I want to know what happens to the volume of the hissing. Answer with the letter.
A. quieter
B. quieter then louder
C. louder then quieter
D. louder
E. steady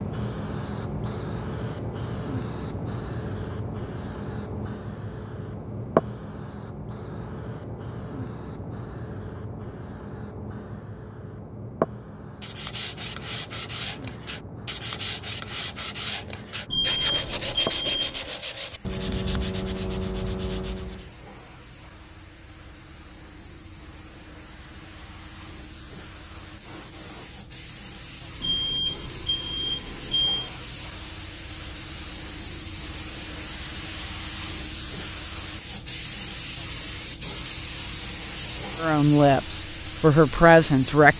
B.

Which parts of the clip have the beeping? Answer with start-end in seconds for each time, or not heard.
16.6-18.2, 28.4-30.5.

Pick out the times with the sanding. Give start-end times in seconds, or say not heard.
12.4-21.1.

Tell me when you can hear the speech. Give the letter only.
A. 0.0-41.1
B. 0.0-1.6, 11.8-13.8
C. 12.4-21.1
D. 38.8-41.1
D.